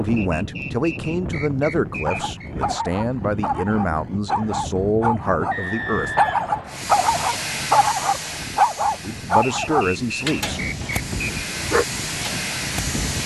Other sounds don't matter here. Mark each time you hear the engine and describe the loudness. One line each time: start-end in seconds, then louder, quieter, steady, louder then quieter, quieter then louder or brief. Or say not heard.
6.7-13.2 quieter then louder.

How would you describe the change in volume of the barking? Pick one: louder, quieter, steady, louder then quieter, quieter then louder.
louder then quieter.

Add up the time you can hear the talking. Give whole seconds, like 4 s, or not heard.
8 s.